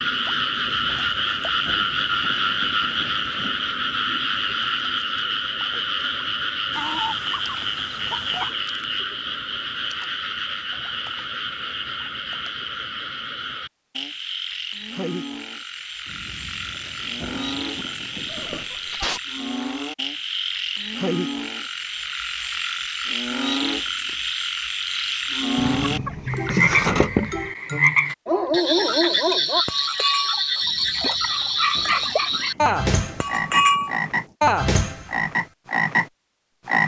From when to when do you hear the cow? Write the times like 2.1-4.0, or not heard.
not heard.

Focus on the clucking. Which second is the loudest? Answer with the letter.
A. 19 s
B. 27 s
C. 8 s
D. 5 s
B.